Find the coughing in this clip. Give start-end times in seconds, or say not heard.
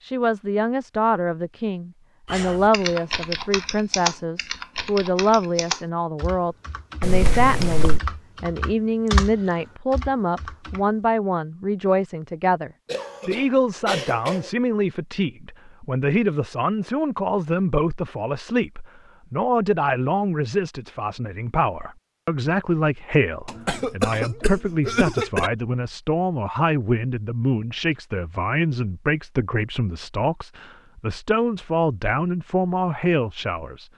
7.0-8.0, 12.8-14.5, 23.4-25.5.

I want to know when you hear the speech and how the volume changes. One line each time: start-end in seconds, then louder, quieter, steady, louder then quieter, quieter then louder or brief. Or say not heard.
0.0-33.9 steady.